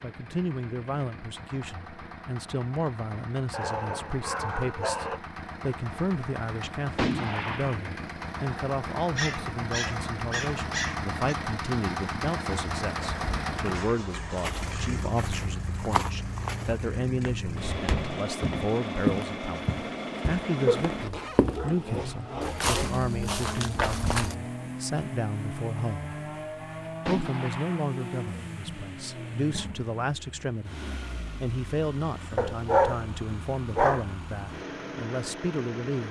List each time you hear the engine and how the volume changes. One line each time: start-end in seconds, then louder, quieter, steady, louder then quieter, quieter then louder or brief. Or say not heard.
0.0-36.0 louder then quieter.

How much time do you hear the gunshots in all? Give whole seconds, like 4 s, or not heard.
2 s.